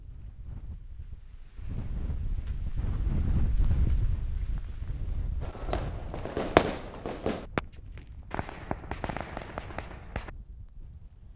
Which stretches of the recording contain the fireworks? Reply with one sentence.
You can hear the fireworks from 5.4 to 10.3 s.